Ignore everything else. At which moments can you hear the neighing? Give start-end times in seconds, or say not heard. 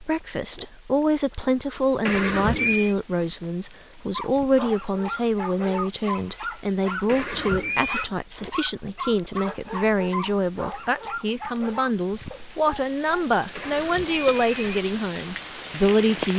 2.0-3.0, 7.0-8.1, 13.6-14.8.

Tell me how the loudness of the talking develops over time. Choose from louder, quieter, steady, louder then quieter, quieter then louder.
steady.